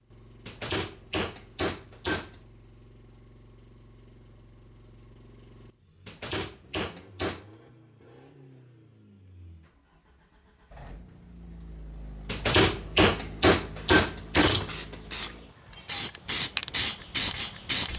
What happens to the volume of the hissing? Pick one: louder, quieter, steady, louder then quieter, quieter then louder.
louder.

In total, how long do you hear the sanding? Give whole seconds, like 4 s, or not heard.
not heard.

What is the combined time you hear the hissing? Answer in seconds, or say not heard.
4 s.